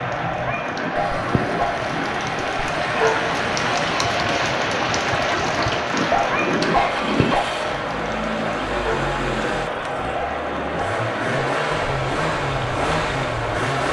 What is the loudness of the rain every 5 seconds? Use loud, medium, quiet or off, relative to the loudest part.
loud, loud, medium.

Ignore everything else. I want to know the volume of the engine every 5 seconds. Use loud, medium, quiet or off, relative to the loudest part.
medium, loud, loud.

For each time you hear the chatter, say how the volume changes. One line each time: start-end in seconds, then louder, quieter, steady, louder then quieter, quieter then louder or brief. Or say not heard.
0.0-13.8 steady.